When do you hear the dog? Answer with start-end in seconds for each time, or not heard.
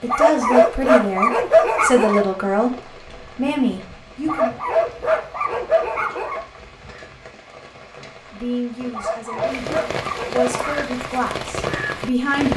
0.1-2.2, 4.2-6.5, 8.9-10.8.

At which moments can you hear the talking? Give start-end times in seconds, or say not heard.
0.0-4.5, 8.3-12.5.